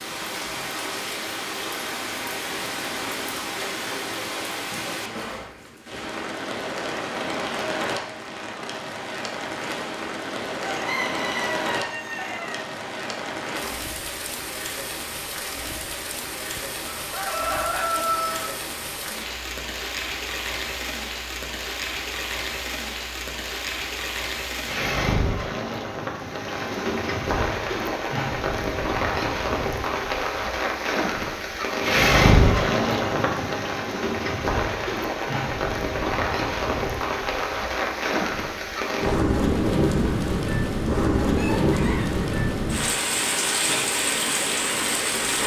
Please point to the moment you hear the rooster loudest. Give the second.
18 s.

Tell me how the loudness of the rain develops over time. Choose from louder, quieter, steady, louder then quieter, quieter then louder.
louder.